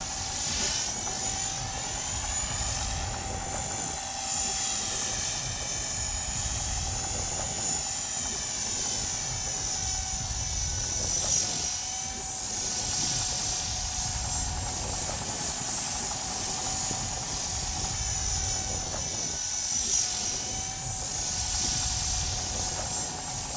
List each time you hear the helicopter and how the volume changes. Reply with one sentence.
You can hear the helicopter from 0.0 to 23.5 s, at a steady volume.